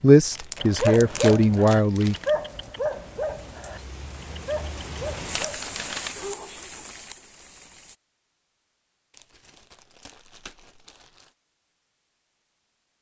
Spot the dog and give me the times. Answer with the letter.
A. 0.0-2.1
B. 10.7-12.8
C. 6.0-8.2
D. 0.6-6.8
D.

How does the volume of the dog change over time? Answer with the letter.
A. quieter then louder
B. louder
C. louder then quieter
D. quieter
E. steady
D.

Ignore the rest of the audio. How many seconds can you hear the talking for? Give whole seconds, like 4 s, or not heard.
2 s.